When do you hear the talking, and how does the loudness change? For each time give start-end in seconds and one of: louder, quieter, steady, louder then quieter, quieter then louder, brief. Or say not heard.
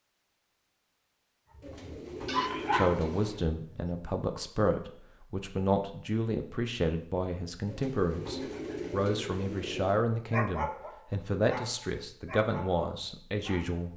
2.7-13.9 steady.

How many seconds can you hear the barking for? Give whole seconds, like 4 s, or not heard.
6 s.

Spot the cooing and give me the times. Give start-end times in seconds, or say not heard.
1.6-3.5, 7.7-10.0.